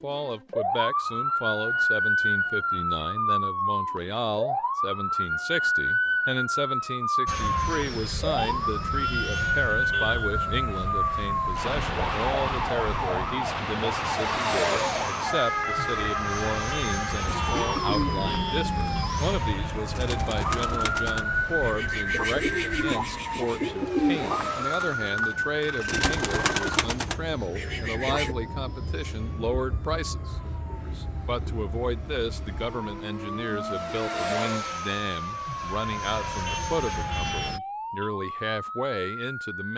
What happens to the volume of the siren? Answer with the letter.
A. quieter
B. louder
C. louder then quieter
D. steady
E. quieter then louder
A.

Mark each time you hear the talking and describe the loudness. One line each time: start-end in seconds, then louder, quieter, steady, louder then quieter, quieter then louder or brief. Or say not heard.
0.0-39.7 steady.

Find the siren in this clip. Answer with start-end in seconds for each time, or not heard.
0.1-39.7.